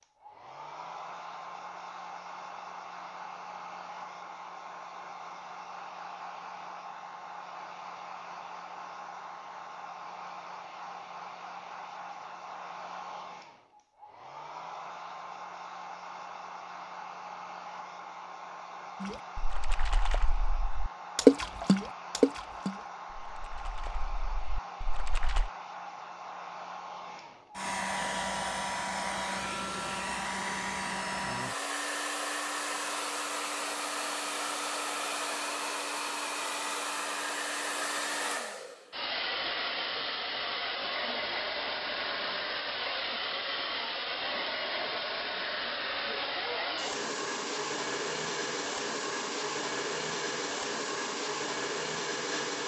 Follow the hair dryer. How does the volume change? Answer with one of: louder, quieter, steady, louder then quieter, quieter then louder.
louder.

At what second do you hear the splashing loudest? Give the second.
21 s.